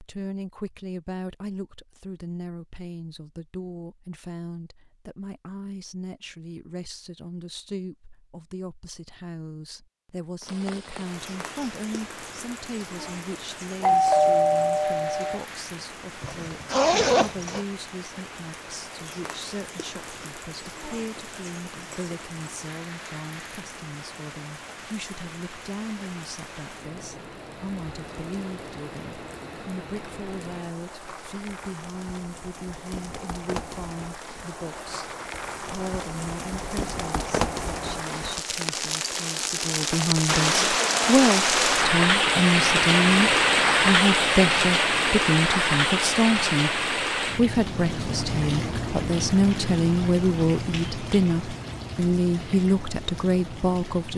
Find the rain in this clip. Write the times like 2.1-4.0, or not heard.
10.4-54.1.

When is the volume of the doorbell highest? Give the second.
14 s.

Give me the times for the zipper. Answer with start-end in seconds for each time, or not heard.
16.2-17.6.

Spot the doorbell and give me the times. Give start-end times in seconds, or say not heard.
13.8-15.4.